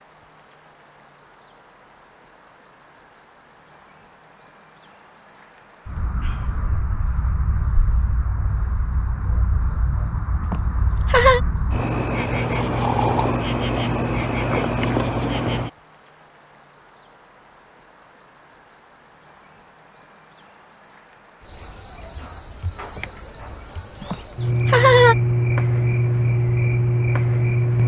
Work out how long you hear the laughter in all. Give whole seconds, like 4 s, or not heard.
2 s.